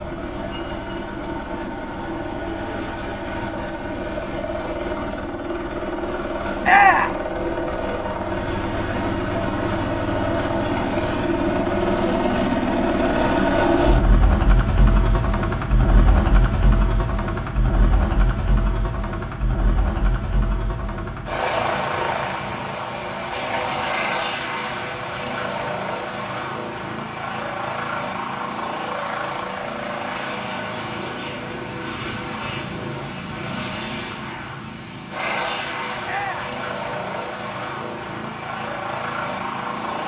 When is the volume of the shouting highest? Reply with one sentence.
The volume of the shouting peaks at 7 seconds.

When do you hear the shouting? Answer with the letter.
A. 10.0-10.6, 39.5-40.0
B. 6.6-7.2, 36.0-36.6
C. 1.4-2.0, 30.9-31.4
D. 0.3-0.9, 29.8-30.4
B.